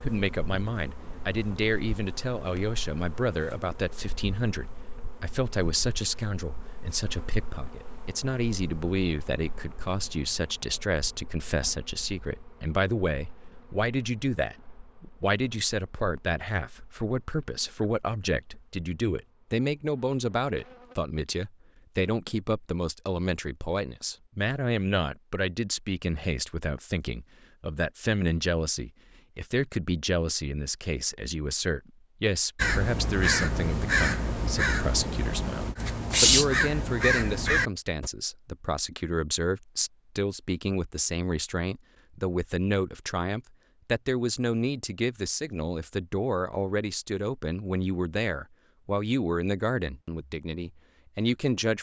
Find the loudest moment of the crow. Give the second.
36 s.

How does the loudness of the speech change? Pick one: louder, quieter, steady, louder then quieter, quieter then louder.
steady.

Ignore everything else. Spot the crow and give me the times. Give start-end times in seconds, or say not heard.
32.5-38.1.